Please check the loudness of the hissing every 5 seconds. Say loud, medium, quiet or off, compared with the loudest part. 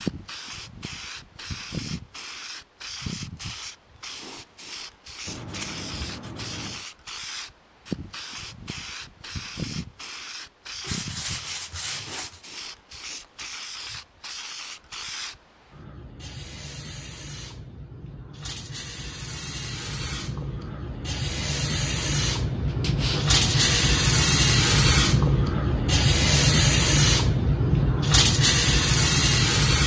quiet, quiet, quiet, quiet, loud, loud.